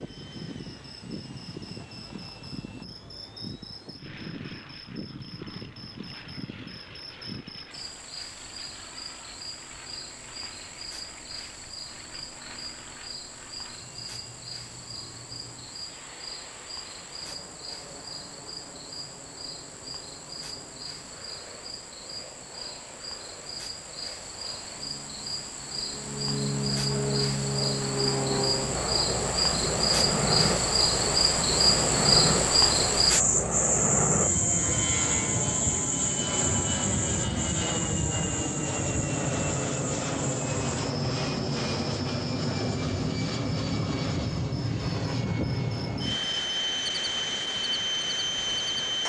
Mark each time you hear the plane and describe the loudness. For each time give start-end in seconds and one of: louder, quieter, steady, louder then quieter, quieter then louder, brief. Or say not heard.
0.0-49.0 louder.